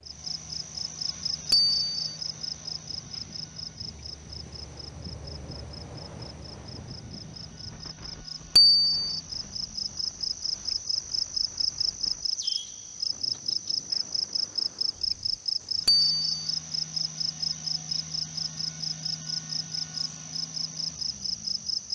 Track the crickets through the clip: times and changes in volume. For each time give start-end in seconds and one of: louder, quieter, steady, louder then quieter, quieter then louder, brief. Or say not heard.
0.1-21.9 quieter then louder.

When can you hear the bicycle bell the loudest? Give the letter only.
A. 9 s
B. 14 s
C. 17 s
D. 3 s
A.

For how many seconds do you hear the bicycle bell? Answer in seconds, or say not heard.
2 s.